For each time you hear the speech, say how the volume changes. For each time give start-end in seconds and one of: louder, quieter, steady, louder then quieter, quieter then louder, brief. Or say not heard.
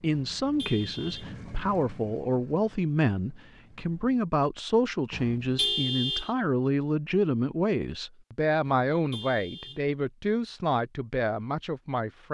0.0-12.2 steady.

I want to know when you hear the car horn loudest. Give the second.
6 s.